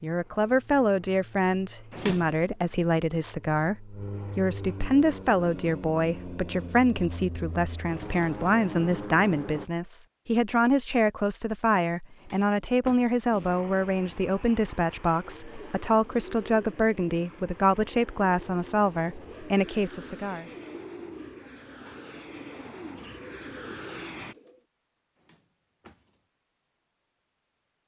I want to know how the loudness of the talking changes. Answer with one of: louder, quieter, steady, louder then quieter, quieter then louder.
steady.